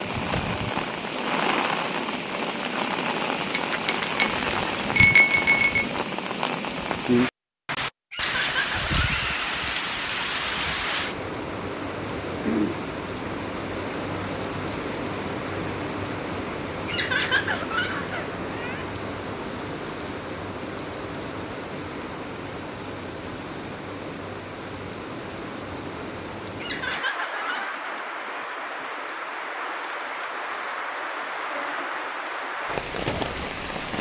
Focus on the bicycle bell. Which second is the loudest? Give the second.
5 s.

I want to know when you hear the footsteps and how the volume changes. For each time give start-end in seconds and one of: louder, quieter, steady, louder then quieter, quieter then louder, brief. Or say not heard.
not heard.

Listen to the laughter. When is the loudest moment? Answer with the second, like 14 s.
17 s.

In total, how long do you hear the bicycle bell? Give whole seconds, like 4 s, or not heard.
2 s.